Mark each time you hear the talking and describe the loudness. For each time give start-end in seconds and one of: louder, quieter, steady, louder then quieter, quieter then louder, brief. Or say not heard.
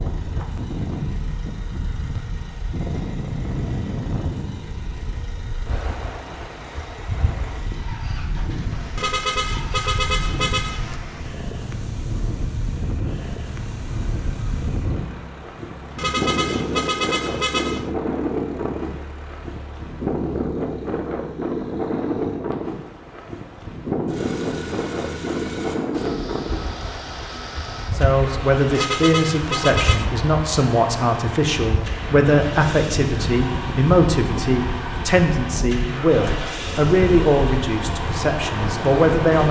27.9-39.4 steady.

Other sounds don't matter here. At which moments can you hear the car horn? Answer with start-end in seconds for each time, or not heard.
8.9-11.0, 15.9-17.9, 28.7-30.1.